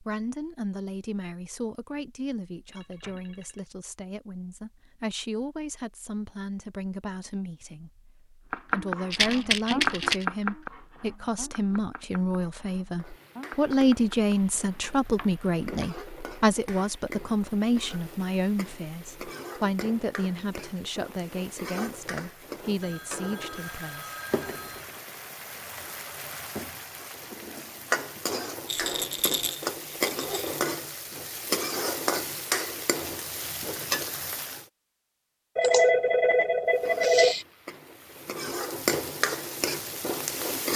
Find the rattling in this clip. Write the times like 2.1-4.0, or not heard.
9.1-10.2, 28.6-30.4.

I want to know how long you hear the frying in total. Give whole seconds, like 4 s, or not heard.
26 s.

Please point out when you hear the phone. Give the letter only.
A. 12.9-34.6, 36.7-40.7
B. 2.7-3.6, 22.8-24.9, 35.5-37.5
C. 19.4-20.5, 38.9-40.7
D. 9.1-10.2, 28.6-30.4
B.